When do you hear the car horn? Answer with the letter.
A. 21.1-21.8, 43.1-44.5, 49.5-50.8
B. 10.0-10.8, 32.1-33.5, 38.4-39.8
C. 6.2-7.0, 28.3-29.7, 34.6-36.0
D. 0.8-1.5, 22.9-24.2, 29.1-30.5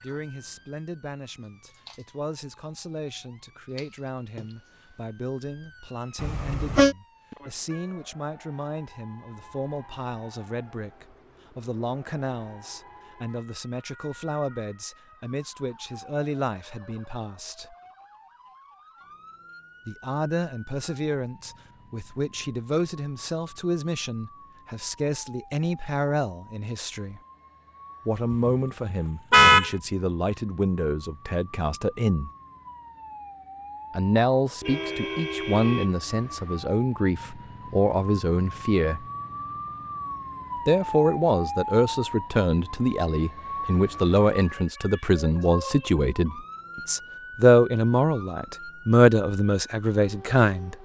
C.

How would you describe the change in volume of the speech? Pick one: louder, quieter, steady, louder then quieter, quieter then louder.
louder.